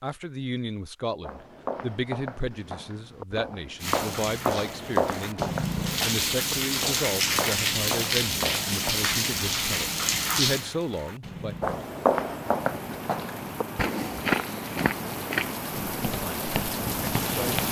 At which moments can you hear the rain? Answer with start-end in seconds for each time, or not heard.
3.8-17.6.